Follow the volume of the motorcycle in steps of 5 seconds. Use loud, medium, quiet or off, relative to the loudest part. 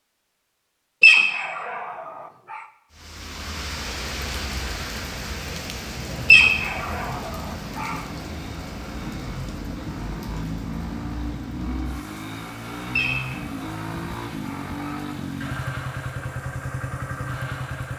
off, medium, loud, loud.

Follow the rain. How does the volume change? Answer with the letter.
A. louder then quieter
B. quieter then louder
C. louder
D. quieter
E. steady
D.